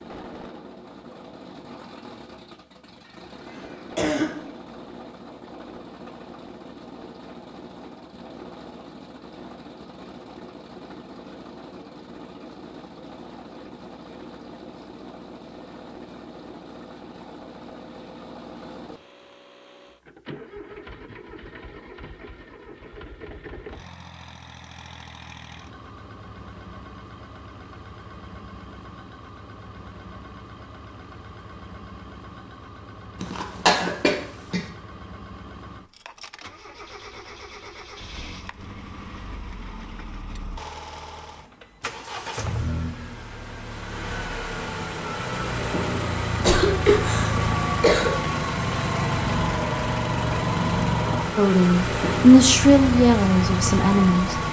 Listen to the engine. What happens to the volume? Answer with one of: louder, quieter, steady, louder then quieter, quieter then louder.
louder.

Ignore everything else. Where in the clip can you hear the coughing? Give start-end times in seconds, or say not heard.
3.0-4.7, 33.2-34.6, 46.4-48.1.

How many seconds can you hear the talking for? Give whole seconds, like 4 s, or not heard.
3 s.